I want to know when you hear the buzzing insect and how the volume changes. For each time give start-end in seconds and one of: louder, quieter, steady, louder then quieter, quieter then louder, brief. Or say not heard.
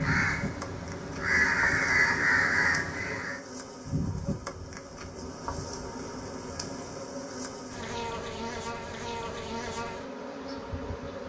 0.0-11.2 steady.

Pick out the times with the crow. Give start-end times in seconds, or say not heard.
0.0-3.4.